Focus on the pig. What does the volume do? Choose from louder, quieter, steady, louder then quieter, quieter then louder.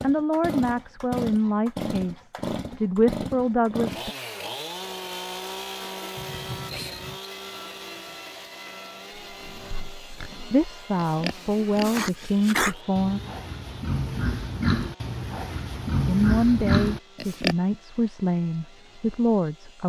louder.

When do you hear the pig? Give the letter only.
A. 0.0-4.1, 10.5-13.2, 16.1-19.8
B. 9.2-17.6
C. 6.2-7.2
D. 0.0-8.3
B.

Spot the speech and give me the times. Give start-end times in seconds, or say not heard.
0.0-4.1, 10.5-13.2, 16.1-19.8.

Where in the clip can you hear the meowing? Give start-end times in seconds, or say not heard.
6.2-7.2.